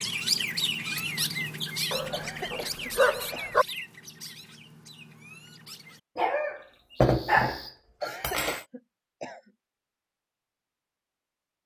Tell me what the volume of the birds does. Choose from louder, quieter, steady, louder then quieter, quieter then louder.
quieter.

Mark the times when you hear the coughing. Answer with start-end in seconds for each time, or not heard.
2.1-3.6, 8.0-9.5.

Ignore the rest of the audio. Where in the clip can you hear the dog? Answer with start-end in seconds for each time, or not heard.
1.9-3.6, 6.2-8.6.